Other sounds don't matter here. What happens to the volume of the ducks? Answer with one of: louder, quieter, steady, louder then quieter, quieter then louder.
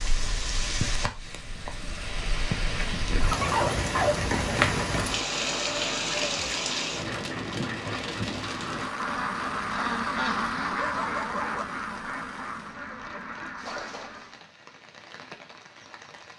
louder then quieter.